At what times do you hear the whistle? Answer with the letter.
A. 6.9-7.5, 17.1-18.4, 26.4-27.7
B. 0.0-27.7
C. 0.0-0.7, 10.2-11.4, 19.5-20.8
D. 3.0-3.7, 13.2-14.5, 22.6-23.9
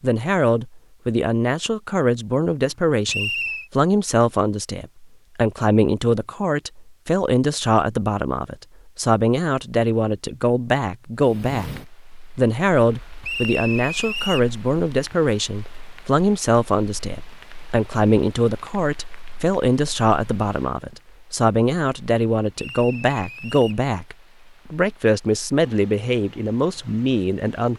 D.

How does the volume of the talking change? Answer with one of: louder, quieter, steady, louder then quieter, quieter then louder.
steady.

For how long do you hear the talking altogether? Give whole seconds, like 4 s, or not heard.
28 s.